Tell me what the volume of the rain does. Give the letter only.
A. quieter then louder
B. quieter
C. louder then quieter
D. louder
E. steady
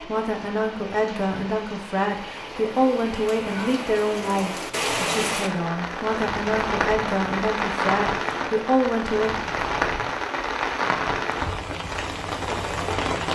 D.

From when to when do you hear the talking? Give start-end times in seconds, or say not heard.
0.0-9.3.